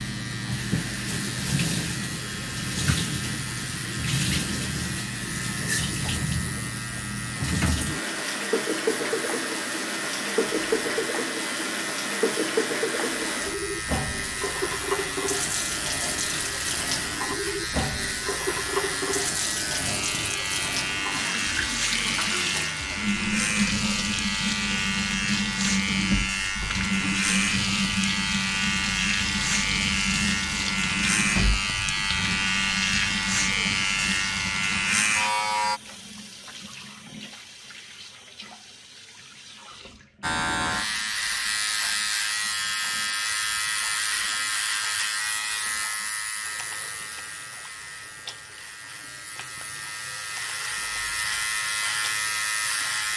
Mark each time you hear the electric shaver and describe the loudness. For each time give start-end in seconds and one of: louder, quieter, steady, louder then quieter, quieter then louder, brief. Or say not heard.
0.0-35.8 louder
40.2-53.1 quieter then louder.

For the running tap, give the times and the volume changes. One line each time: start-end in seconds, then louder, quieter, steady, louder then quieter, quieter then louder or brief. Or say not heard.
0.0-53.1 quieter.